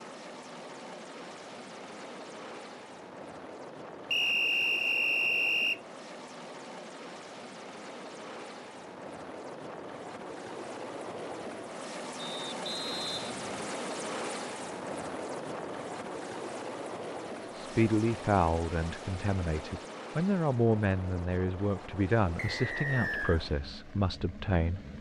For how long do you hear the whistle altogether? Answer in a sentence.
The whistle can be heard for 4 seconds in total.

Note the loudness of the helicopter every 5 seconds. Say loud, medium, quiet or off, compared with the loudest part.
medium, medium, loud, loud, medium.